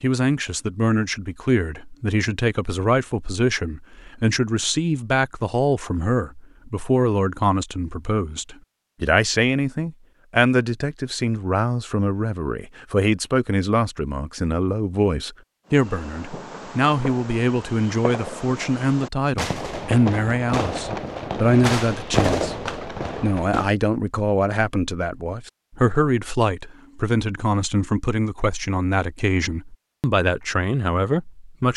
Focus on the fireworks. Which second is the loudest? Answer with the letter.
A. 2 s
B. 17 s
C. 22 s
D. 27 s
C.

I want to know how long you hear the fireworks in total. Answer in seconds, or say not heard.
8 s.